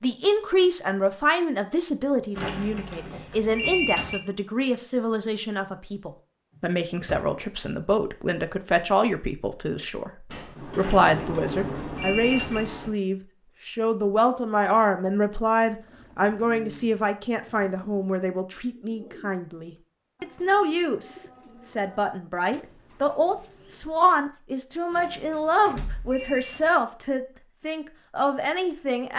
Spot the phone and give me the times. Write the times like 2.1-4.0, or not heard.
2.3-4.2, 10.8-12.6, 24.9-26.8.